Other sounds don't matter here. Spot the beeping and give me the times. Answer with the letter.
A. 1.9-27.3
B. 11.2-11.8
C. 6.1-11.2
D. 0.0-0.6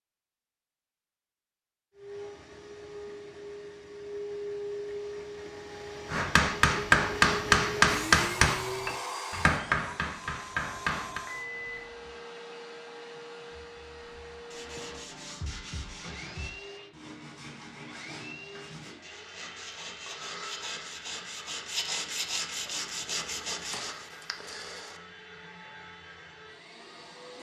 B.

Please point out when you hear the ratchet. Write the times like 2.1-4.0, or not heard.
not heard.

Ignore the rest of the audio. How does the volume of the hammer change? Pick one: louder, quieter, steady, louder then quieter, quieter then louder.
quieter.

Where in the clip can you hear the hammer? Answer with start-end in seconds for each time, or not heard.
6.1-11.2.